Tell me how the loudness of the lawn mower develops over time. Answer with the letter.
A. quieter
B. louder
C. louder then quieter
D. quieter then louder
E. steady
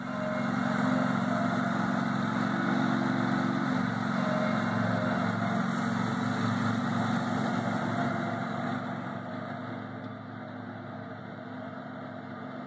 A.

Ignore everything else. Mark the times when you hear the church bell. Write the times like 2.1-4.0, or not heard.
0.0-5.3.